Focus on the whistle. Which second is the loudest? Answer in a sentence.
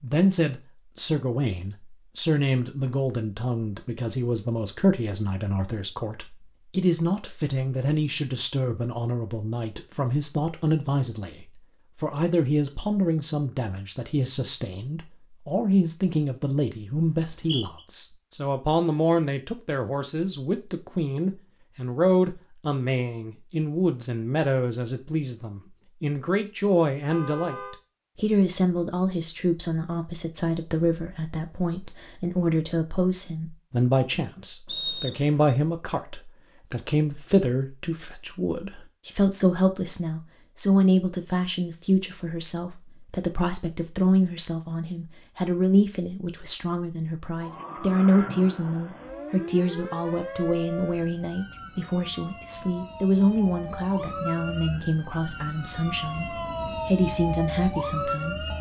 The loudest moment of the whistle is at 35 seconds.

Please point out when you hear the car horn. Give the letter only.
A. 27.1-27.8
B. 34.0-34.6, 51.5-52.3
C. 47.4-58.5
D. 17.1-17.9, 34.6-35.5
A.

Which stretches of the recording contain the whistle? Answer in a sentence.
You can hear the whistle from 17.1 to 17.9 s and from 34.6 to 35.5 s.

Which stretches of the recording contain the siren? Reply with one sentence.
You can hear the siren from 47.4 to 58.5 s.